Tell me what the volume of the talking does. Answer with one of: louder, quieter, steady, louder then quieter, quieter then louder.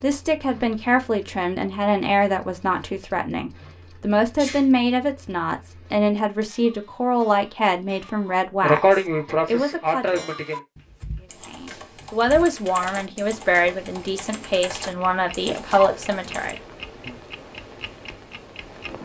steady.